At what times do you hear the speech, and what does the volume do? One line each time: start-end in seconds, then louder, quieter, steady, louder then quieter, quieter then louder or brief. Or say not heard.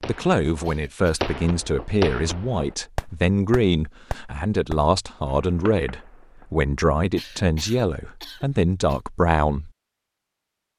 0.1-9.7 steady.